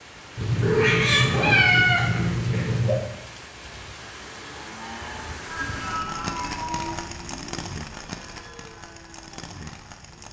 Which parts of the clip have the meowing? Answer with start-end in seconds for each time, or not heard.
0.3-3.0, 5.5-7.0.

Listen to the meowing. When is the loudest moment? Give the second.
2 s.